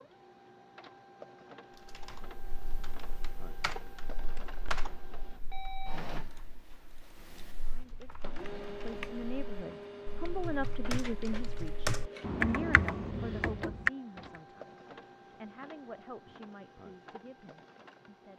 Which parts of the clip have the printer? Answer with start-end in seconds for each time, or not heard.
0.0-18.3.